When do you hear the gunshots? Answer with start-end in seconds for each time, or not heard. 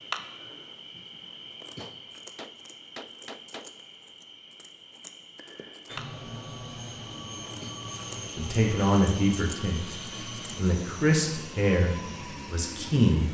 1.8-3.7.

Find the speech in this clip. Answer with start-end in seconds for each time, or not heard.
8.3-13.2.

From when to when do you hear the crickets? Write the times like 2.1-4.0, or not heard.
0.0-10.6.